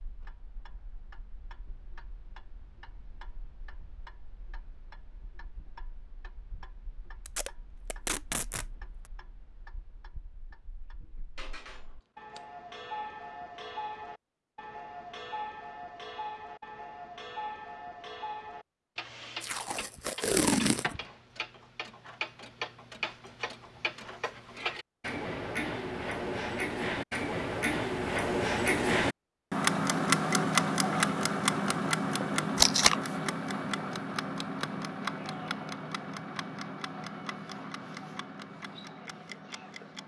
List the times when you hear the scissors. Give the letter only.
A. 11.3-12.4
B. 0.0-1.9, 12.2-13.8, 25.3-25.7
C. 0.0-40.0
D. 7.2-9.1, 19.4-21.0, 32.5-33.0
A.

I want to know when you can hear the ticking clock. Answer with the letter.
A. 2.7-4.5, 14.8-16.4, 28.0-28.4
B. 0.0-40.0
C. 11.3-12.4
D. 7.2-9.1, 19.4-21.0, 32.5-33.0
B.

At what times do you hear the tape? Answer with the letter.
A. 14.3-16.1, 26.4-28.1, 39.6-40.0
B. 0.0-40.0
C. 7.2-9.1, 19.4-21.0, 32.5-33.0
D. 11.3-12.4
C.